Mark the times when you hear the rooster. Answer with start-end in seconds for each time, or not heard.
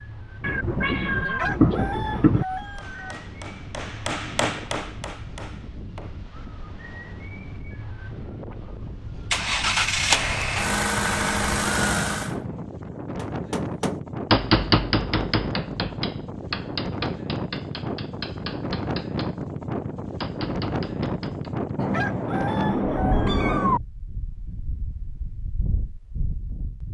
1.2-3.1, 21.8-23.6.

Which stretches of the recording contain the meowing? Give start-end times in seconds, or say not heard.
0.4-2.5, 10.7-12.7, 21.8-23.8.